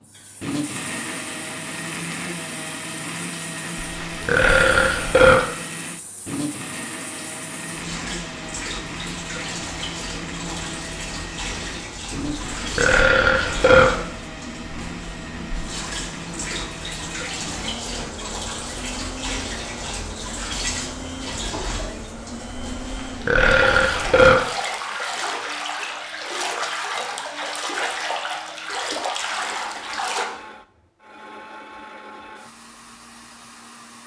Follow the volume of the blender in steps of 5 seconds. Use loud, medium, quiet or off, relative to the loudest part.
loud, loud, loud, medium, medium, medium, medium.